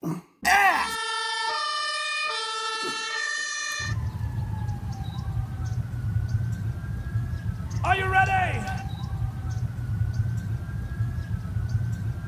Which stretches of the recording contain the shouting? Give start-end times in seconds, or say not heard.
0.4-0.9, 7.8-8.8.